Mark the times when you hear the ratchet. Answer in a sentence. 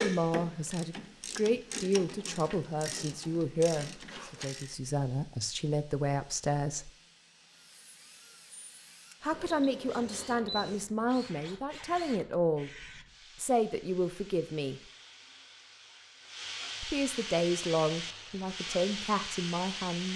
You can hear the ratchet from 0.0 to 4.7 s.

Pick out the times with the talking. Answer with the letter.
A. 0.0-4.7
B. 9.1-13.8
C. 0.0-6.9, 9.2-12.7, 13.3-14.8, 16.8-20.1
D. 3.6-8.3
C.